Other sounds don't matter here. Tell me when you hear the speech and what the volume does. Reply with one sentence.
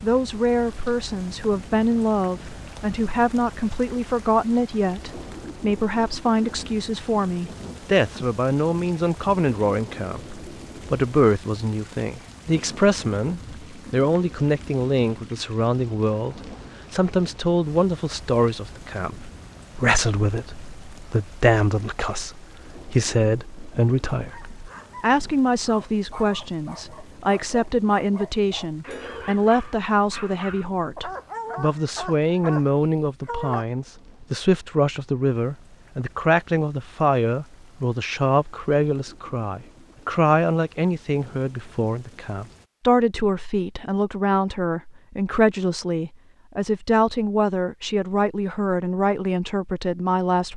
The speech can be heard from 0.0 to 50.5 s, at a steady volume.